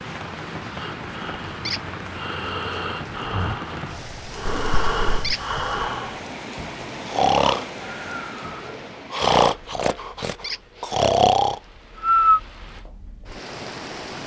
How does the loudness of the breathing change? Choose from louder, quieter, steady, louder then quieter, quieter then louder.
louder.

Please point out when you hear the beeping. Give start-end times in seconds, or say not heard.
4.5-5.3.